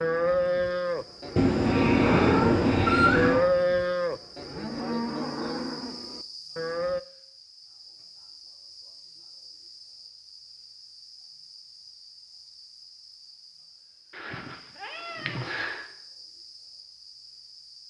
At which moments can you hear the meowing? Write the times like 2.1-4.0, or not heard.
1.4-3.5, 14.2-15.8.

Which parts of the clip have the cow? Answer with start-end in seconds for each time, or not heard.
0.0-7.0.